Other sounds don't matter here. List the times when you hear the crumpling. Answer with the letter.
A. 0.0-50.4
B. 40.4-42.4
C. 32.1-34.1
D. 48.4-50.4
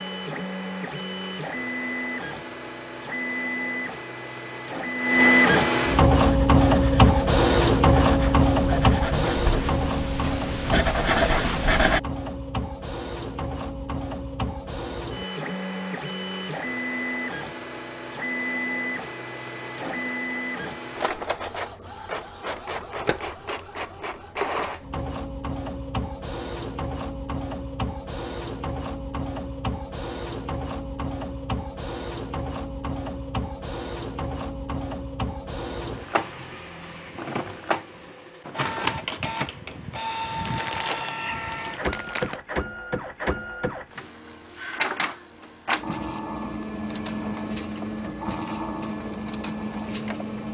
B.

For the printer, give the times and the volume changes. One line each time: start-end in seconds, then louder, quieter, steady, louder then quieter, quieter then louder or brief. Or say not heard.
0.0-50.4 quieter.